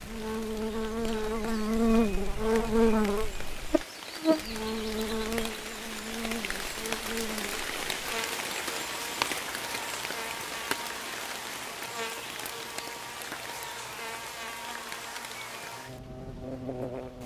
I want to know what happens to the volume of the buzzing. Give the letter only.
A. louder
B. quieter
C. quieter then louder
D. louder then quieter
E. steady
B.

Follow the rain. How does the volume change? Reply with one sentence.
The volume of the rain goes up, then down.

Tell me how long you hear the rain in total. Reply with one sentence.
The rain can be heard for 17 seconds in total.